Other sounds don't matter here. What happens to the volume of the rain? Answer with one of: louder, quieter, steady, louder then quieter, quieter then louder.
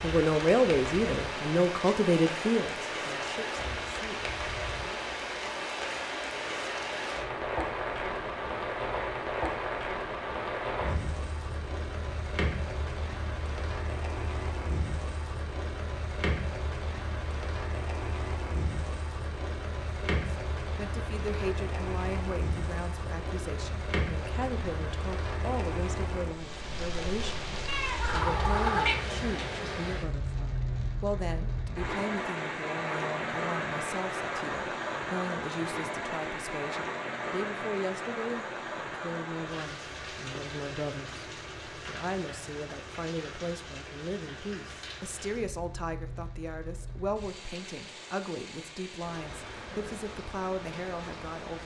quieter.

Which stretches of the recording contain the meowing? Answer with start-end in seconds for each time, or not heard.
27.6-29.1.